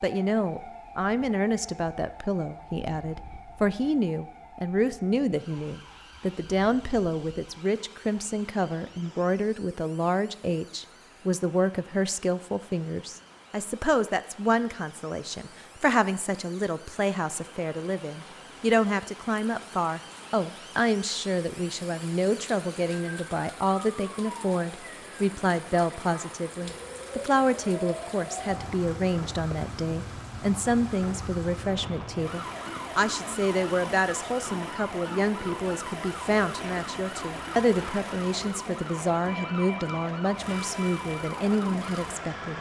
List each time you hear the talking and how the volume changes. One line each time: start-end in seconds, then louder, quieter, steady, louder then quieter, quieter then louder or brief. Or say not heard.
0.0-42.5 steady.